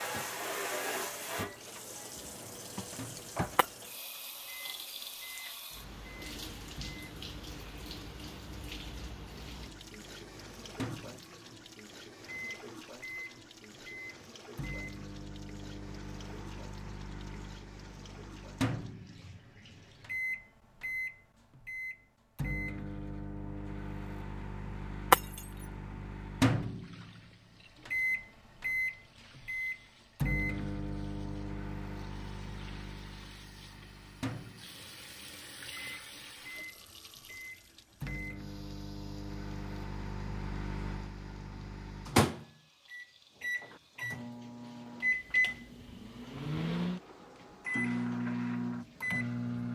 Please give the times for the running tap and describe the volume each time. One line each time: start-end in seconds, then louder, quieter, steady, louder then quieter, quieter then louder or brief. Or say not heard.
0.0-20.2 quieter
26.4-49.7 louder then quieter.